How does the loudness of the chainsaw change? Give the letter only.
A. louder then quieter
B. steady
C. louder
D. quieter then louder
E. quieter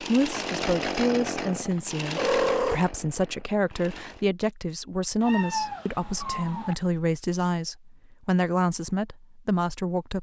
E.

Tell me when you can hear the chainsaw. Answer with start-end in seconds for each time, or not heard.
0.0-4.2.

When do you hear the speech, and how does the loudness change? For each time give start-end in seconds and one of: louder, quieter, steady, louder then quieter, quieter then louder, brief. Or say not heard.
0.0-10.1 steady.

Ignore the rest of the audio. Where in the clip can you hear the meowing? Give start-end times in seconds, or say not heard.
2.1-2.8, 5.2-6.8.